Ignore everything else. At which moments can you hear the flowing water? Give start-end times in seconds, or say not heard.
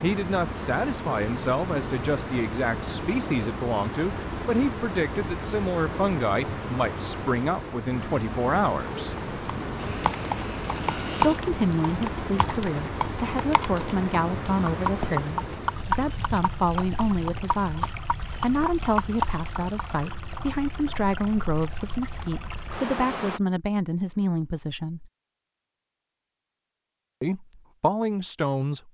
0.0-23.4.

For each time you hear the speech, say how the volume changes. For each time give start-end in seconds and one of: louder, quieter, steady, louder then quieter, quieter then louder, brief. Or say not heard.
0.0-9.2 steady
11.2-25.1 steady
27.2-28.8 brief.